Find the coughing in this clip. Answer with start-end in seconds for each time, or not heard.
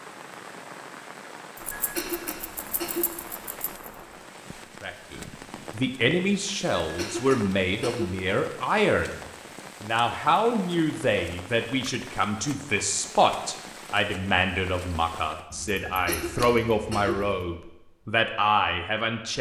1.8-3.1, 6.8-8.2, 15.8-17.2.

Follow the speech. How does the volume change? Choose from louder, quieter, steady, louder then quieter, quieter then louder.
steady.